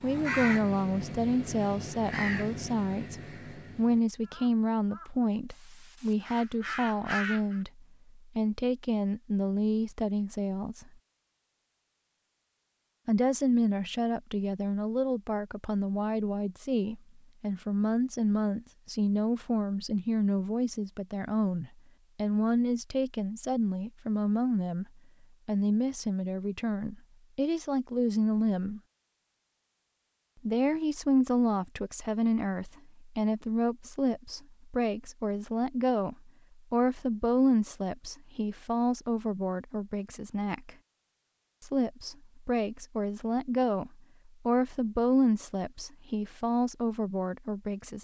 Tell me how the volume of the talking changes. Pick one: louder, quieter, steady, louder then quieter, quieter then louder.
steady.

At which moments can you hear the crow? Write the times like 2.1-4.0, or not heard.
0.0-7.6.